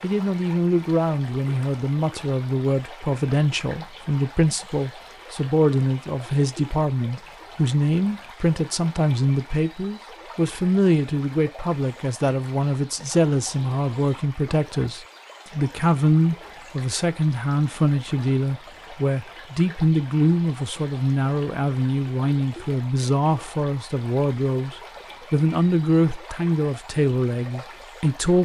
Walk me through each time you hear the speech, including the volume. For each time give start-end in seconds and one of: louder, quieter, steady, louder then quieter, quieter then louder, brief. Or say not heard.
0.0-28.4 steady.